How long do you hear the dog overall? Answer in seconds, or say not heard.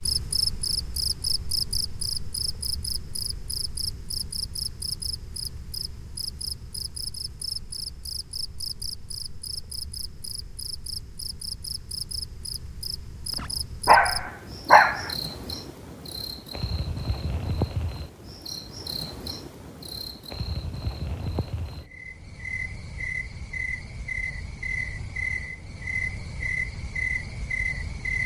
2 s.